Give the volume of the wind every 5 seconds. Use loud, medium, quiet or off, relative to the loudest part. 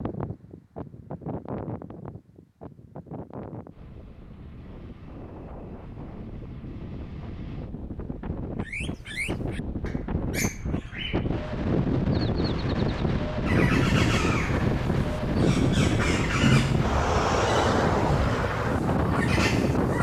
quiet, quiet, loud, loud.